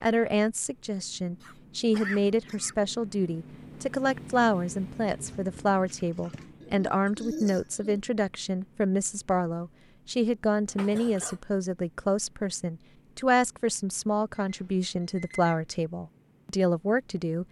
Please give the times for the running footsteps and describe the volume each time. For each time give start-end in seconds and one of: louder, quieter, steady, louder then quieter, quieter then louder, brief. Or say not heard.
not heard.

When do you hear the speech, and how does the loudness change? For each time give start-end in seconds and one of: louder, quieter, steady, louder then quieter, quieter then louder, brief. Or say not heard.
0.0-17.4 steady.